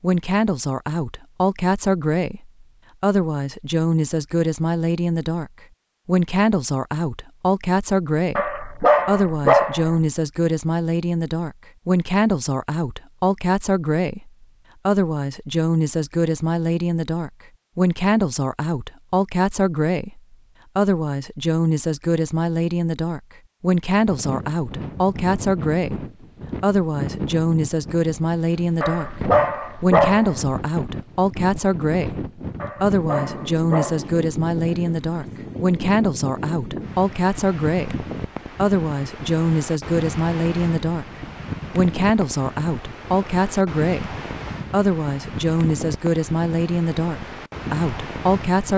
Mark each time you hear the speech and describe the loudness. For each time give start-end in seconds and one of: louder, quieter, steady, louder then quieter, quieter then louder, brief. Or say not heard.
0.0-29.1 steady
29.8-41.0 steady
41.7-48.7 steady.